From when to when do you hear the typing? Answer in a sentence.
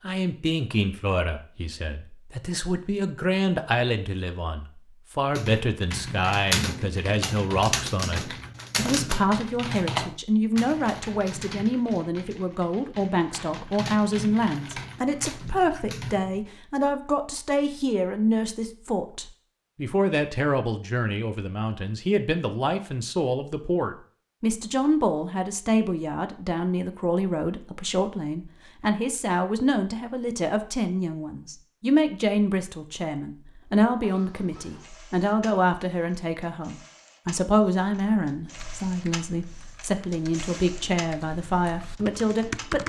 You can hear the typing from 5.3 to 16.4 s and from 38.5 to 42.8 s.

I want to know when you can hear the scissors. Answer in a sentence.
You can't hear the scissors here.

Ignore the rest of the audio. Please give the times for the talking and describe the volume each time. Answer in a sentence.
You can hear the talking from 0.0 to 42.8 s, at a steady volume.